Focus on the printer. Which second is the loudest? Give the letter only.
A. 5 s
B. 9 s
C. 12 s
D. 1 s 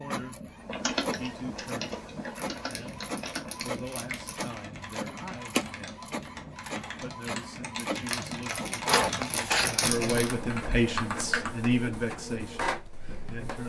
B.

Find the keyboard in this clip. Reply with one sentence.
The keyboard can be heard from 0.6 to 11.7 s.